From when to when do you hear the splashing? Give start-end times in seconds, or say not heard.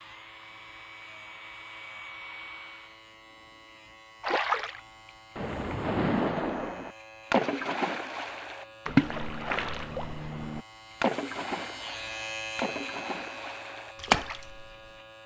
4.2-14.7.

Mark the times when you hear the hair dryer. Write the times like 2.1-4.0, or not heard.
0.0-3.0.